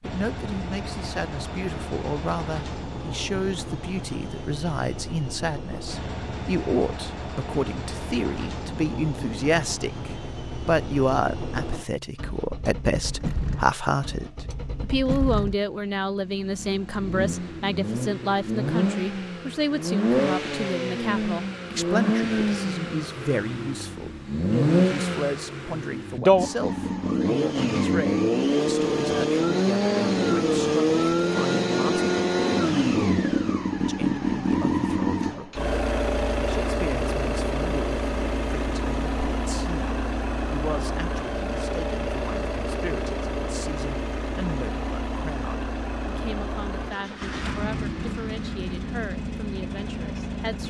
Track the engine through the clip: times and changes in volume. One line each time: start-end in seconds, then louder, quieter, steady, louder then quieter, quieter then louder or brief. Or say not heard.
0.0-50.6 louder then quieter.